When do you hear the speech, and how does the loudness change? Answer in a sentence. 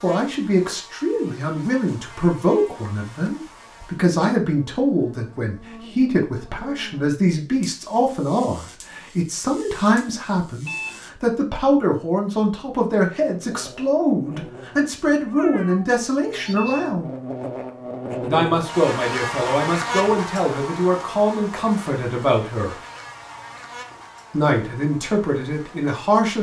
You can hear the speech from 0.0 to 17.1 s, at a steady volume; from 18.2 to 22.8 s, at a steady volume; and briefly from 24.3 to 26.3 s.